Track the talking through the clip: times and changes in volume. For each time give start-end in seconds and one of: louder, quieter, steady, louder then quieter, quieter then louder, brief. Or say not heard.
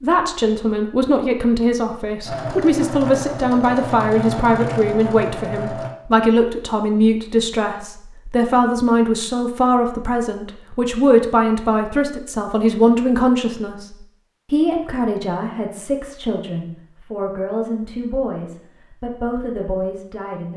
0.0-20.5 quieter.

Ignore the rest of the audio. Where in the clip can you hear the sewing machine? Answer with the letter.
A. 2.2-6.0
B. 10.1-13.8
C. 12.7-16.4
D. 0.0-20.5
A.